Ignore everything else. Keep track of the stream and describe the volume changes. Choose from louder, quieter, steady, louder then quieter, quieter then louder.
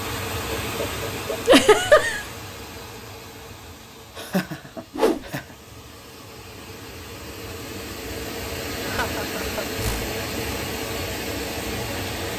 quieter then louder.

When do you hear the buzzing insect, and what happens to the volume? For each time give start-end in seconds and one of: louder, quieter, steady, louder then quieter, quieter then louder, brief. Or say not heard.
not heard.